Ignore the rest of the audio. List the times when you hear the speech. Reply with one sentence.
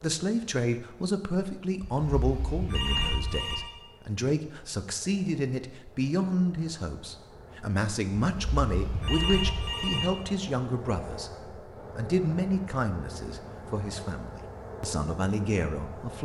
You can hear the speech from 0.0 to 16.1 s.